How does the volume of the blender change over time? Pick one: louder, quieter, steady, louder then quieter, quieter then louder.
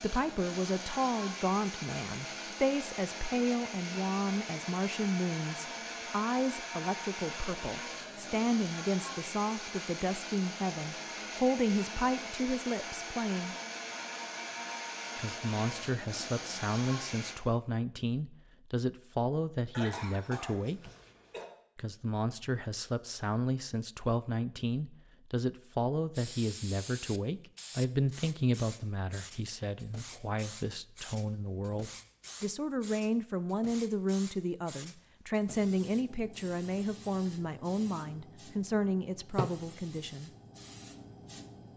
steady.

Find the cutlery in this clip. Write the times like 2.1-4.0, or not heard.
not heard.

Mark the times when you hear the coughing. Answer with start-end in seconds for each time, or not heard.
19.7-21.5.